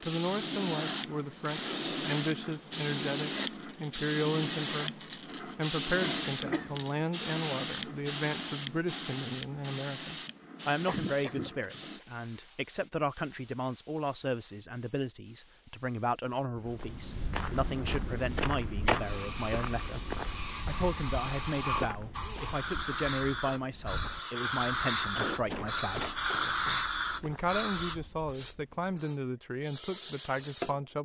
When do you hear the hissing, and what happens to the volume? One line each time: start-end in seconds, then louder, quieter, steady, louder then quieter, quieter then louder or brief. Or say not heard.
0.0-30.8 quieter then louder.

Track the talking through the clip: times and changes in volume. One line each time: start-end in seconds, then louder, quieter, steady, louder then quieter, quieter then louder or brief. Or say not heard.
0.0-30.9 steady.